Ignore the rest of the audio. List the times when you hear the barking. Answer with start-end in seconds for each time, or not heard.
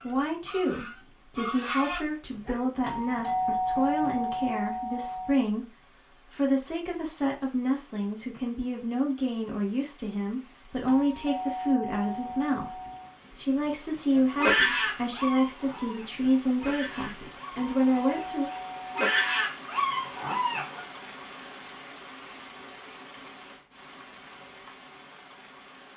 0.0-2.7, 14.2-20.8.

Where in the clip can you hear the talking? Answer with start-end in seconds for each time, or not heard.
0.0-18.5.